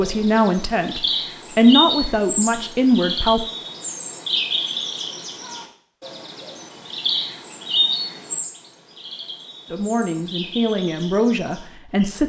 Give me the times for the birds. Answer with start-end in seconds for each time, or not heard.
0.0-12.2.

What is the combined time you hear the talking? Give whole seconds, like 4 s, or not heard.
6 s.